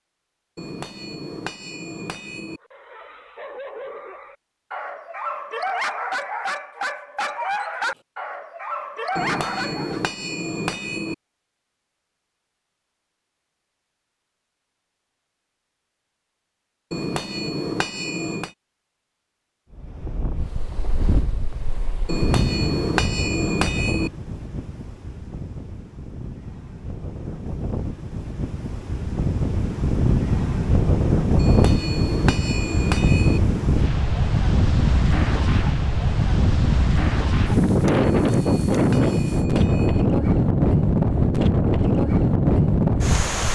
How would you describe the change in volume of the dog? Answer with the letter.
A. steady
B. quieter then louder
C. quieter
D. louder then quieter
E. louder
E.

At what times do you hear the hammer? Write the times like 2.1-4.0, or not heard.
0.6-2.6, 9.2-11.2, 16.9-18.5, 22.1-24.1, 31.4-33.4, 38.1-40.0.